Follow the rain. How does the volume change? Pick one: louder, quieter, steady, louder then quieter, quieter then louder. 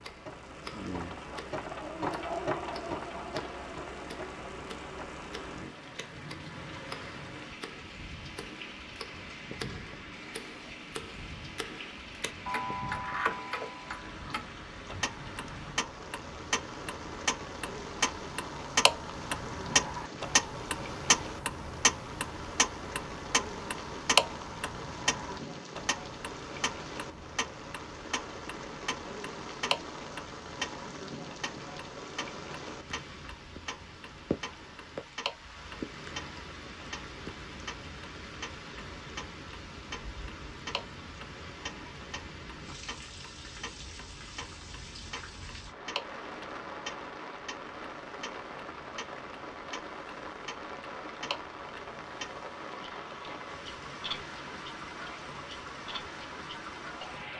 steady.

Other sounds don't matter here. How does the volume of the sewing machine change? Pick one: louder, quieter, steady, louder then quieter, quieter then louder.
louder then quieter.